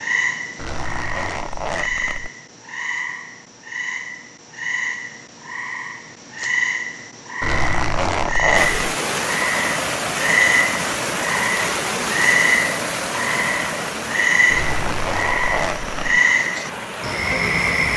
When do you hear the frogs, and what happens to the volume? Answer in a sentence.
You can hear the frogs from 0.0 to 17.9 s, getting louder.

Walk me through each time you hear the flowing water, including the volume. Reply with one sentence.
You can hear the flowing water from 8.6 to 17.9 s, getting quieter.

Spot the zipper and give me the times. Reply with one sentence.
You can hear the zipper from 0.6 to 2.3 s, from 7.4 to 8.9 s and from 14.5 to 16.2 s.